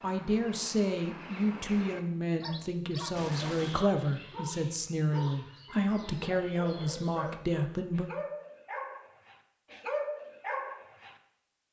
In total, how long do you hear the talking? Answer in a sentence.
You can hear the talking for 8 seconds altogether.